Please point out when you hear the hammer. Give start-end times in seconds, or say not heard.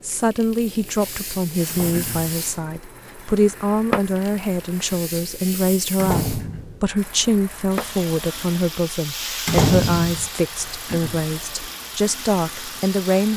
not heard.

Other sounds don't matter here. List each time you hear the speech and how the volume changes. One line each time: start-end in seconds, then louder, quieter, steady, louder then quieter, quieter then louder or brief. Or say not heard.
0.0-13.3 steady.